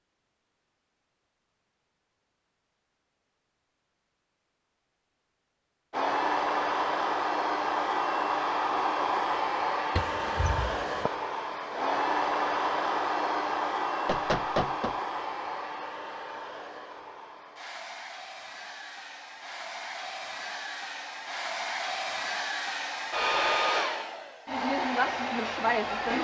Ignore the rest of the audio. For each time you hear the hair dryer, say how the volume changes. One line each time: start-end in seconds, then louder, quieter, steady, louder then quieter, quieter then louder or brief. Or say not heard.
5.9-26.1 quieter then louder.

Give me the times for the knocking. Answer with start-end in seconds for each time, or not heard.
9.9-11.1, 14.1-14.9.